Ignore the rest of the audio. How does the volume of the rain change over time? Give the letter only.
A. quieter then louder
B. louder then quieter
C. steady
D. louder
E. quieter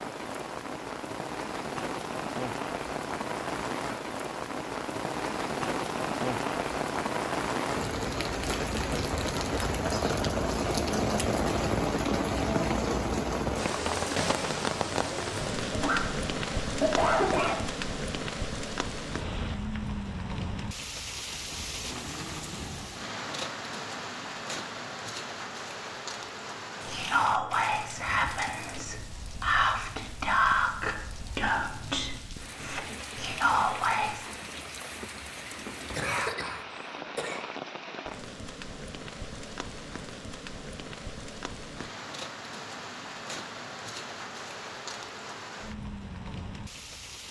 E.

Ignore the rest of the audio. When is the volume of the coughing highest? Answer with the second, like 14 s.
17 s.